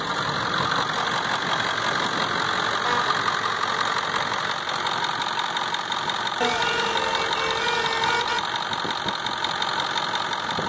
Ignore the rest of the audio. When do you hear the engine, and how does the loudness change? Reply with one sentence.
You can hear the engine from 0.0 to 10.6 s, at a steady volume.